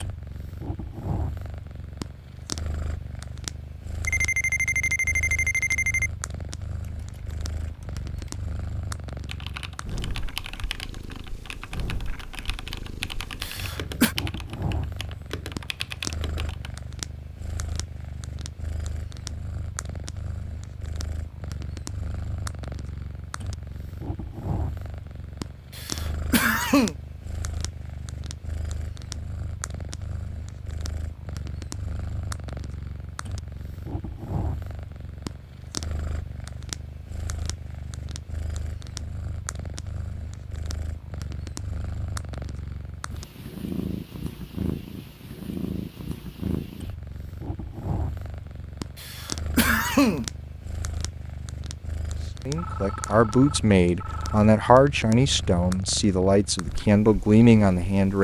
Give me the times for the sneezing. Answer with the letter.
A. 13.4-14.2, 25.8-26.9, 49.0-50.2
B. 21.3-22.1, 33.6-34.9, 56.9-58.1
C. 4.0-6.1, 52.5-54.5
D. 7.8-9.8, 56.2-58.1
A.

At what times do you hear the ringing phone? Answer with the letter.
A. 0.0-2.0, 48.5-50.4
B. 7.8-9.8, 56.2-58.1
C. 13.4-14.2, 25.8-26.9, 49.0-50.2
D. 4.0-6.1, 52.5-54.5
D.